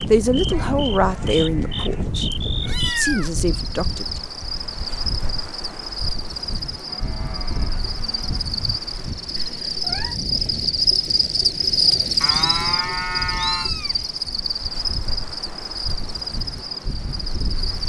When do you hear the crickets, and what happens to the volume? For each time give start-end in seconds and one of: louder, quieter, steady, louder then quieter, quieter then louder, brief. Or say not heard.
0.0-17.8 louder then quieter.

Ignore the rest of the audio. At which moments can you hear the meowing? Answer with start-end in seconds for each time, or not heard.
2.6-3.3, 9.3-10.2, 12.2-13.9.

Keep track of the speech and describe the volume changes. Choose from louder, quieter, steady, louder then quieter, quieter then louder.
quieter then louder.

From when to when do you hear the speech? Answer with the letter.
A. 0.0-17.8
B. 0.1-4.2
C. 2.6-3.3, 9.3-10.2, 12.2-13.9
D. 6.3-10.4
B.